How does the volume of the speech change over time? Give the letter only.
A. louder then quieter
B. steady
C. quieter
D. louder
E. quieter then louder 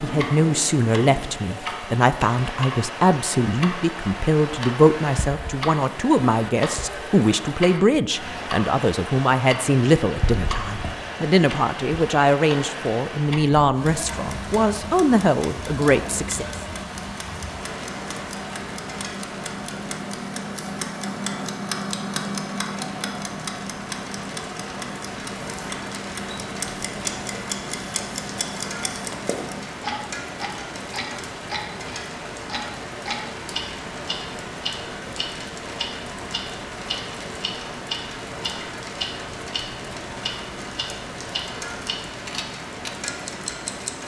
B.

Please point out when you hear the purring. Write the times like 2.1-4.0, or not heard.
not heard.